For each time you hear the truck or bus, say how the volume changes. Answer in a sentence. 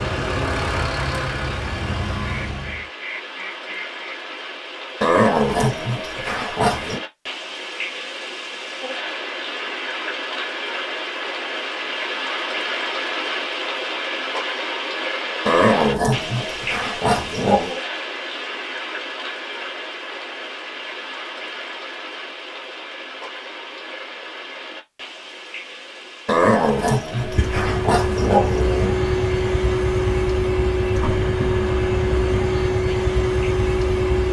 You can hear the truck or bus briefly from 0.0 to 2.9 s; and from 27.1 to 34.2 s, at a steady volume.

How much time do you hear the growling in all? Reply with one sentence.
The growling can be heard for 7 seconds in total.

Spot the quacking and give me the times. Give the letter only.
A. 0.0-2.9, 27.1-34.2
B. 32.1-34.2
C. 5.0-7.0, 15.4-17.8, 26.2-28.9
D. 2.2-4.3
D.